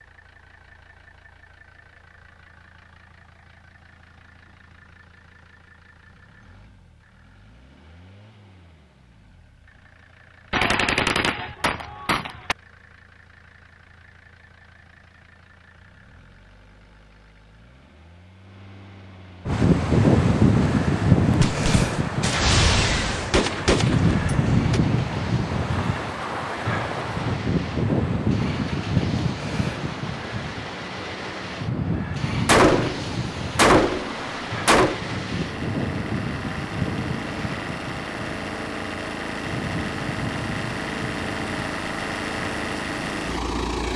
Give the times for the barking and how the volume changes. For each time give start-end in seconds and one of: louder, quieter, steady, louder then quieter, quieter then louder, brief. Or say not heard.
not heard.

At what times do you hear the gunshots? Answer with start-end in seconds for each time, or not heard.
10.5-12.6, 21.4-24.8, 32.5-35.0.